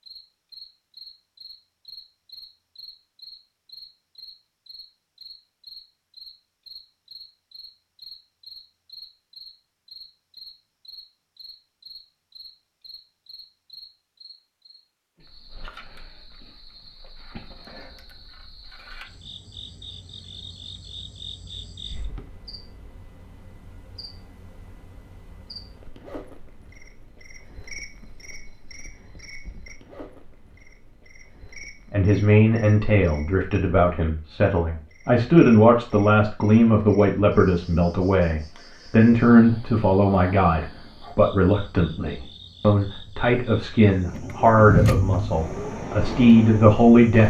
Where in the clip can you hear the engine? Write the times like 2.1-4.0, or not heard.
43.9-47.2.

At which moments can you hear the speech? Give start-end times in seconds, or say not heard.
31.9-47.2.